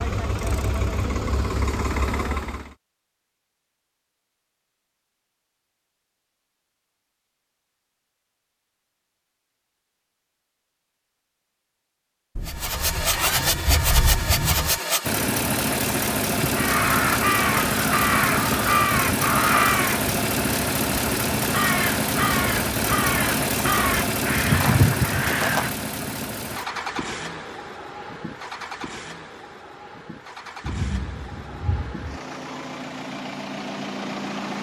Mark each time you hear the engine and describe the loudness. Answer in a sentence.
You can hear the engine briefly from 0.0 to 2.8 s; and from 12.4 to 34.5 s, getting quieter.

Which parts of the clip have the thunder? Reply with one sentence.
You can hear the thunder from 12.3 to 14.8 s and from 30.6 to 32.2 s.